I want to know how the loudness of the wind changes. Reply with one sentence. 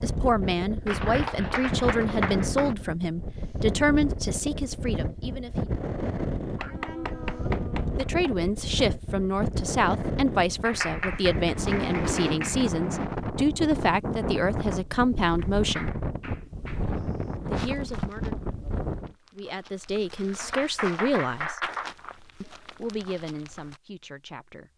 The loudness of the wind stays about the same.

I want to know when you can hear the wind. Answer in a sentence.
You can hear the wind from 0.0 to 19.1 s.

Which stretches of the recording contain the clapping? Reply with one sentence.
You can hear the clapping from 0.8 to 2.8 s, from 6.5 to 8.3 s, from 10.7 to 12.7 s, from 15.3 to 17.1 s and from 20.4 to 21.9 s.